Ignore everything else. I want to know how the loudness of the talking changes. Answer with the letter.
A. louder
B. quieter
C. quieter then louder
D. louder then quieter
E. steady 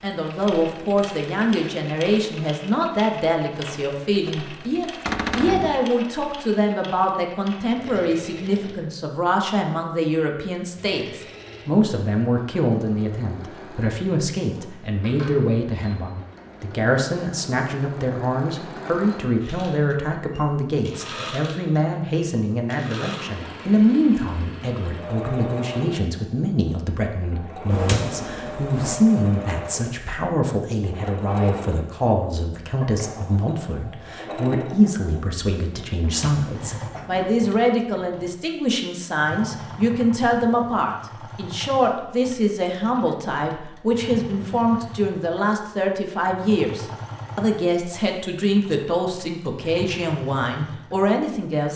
E.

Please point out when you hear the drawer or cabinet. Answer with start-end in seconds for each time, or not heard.
5.0-5.8, 27.7-28.9, 36.0-37.3.